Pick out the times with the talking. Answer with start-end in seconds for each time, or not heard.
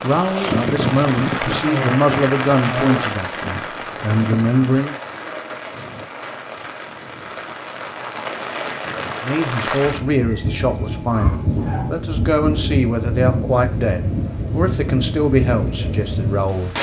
0.0-5.0, 9.2-16.7.